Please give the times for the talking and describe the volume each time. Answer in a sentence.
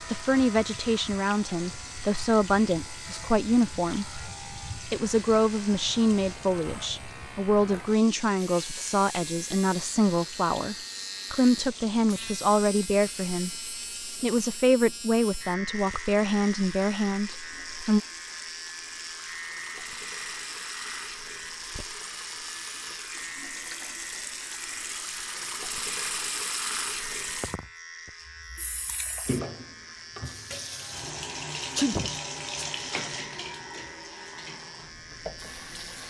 The talking can be heard from 0.1 to 18.0 s, at a steady volume.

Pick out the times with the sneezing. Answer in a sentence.
You can hear the sneezing from 31.8 to 32.7 s.